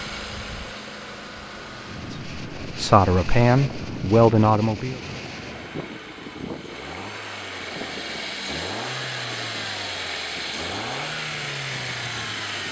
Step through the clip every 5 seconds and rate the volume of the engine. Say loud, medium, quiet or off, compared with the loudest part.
medium, loud, loud.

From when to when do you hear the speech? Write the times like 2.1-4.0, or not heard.
2.1-5.0.